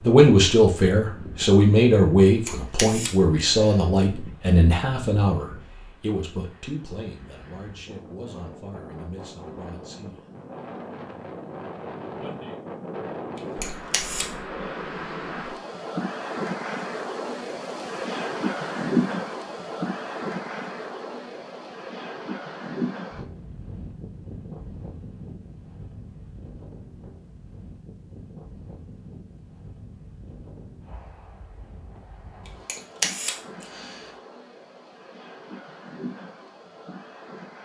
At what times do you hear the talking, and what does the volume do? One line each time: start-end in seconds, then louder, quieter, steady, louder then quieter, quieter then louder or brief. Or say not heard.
0.0-10.2 quieter
12.2-12.6 brief.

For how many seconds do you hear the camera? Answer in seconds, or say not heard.
4 s.